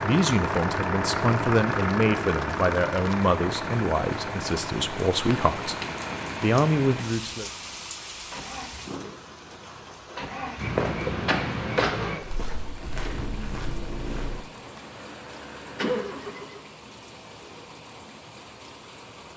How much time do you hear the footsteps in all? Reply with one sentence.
The footsteps can be heard for 4 seconds in total.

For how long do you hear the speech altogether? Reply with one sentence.
The speech can be heard for 7 seconds in total.